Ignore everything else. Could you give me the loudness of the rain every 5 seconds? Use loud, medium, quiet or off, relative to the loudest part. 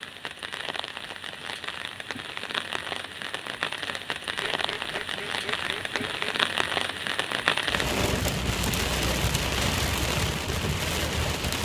medium, loud, loud.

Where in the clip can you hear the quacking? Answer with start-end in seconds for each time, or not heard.
4.3-6.3.